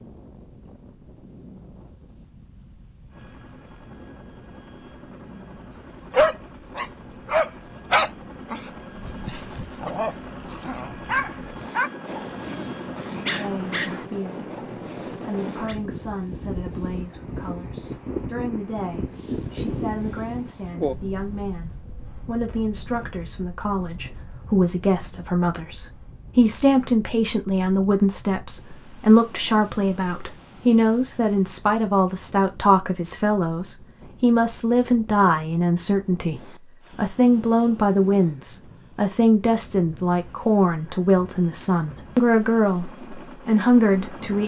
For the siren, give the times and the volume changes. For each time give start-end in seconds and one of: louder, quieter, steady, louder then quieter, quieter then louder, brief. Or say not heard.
not heard.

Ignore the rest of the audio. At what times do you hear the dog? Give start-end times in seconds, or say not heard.
6.1-15.8.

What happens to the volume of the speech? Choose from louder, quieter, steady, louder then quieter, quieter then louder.
louder.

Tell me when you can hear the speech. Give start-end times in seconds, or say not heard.
13.3-44.4.